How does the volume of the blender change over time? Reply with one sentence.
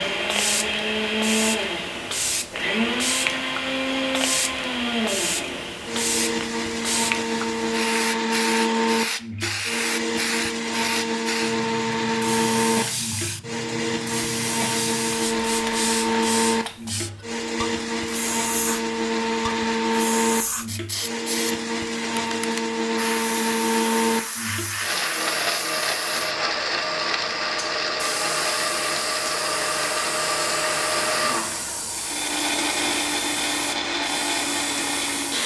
The volume of the blender stays about the same.